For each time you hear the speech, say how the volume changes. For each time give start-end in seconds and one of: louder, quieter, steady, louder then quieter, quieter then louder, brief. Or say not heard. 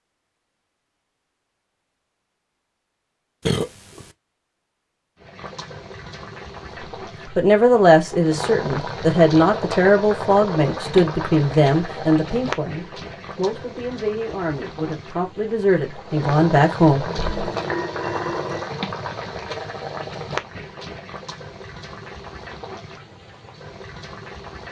7.3-17.1 quieter then louder.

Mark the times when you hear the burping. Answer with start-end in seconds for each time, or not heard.
3.5-4.0, 17.1-18.7.